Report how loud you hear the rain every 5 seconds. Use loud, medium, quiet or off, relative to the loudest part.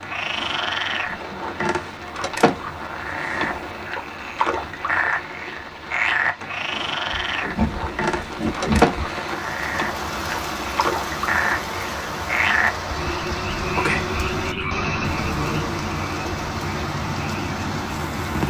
medium, medium, loud, loud.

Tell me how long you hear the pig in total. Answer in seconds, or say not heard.
2 s.